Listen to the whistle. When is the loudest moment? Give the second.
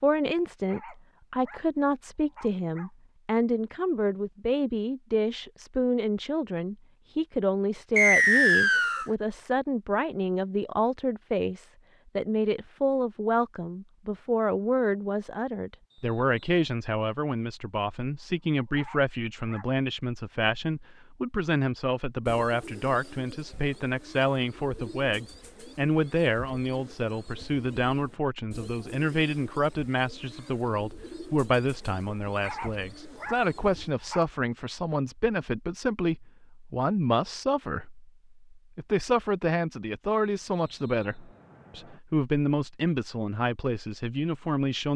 8 s.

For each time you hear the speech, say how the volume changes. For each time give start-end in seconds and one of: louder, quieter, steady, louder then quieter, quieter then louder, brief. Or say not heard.
0.0-44.9 steady.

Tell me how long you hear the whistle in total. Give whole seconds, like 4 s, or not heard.
4 s.